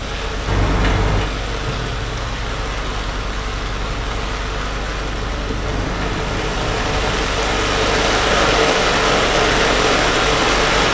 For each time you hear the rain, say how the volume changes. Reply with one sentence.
The rain can be heard from 0.0 to 10.9 s, getting louder.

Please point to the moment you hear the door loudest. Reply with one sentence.
The volume of the door peaks at 1 second.